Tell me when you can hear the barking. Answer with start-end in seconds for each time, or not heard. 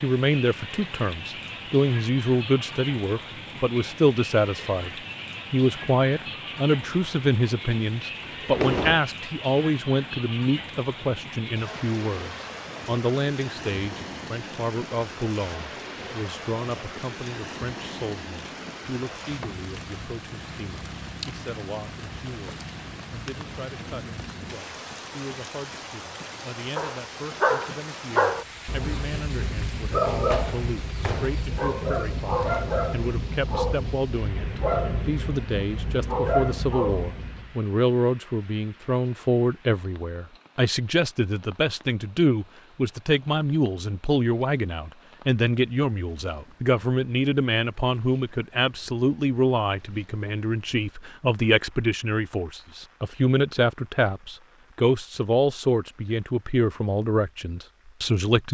26.8-37.5.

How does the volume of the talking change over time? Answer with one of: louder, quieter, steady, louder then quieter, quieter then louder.
quieter then louder.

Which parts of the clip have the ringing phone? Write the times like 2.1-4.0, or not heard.
not heard.